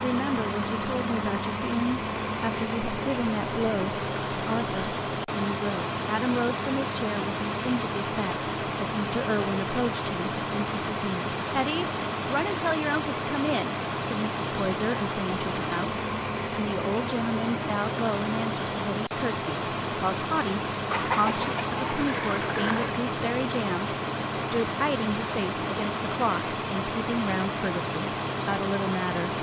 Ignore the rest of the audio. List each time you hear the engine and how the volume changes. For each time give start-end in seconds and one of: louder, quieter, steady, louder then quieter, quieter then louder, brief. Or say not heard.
0.0-29.3 steady.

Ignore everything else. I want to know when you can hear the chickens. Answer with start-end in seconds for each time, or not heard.
20.9-22.9.